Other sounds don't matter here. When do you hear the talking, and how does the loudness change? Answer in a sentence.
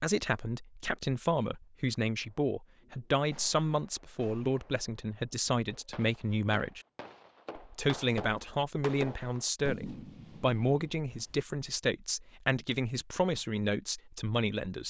You can hear the talking from 0.0 to 6.8 s, at a steady volume; and from 7.5 to 14.8 s, at a steady volume.